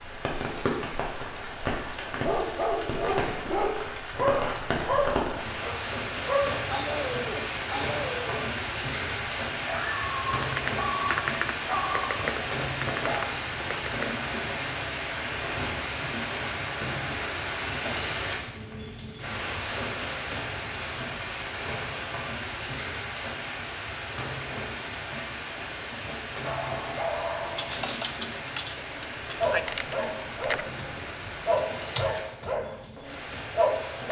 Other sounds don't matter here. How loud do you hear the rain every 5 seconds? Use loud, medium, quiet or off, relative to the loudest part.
loud, loud, loud, loud, loud, medium, medium.